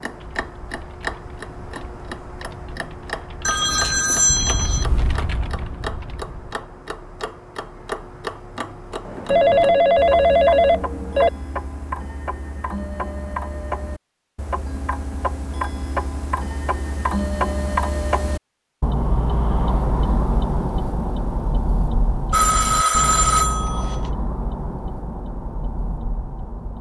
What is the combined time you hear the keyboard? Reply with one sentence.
The keyboard can be heard for 6 seconds in total.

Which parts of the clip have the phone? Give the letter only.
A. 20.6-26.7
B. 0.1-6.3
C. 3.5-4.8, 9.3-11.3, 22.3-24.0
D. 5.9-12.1
C.